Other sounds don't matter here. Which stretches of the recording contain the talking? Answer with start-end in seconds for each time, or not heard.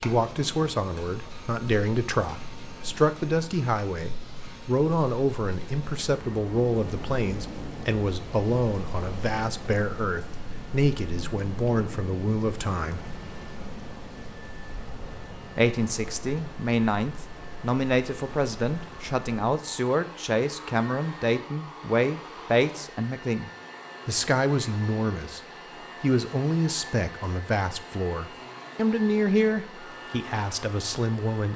0.0-13.1, 15.6-31.5.